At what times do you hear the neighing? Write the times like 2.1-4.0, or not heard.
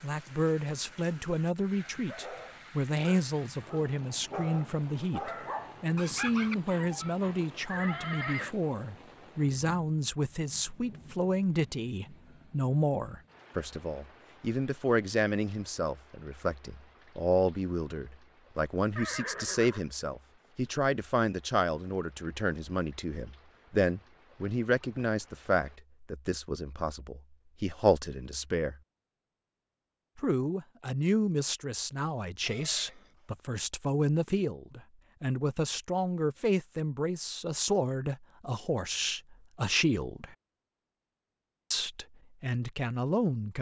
7.7-8.6, 18.9-19.9, 32.5-33.4.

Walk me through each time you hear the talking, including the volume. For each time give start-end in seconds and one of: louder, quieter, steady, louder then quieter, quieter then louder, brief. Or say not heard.
0.0-28.8 steady
30.1-40.4 steady
41.7-43.5 brief.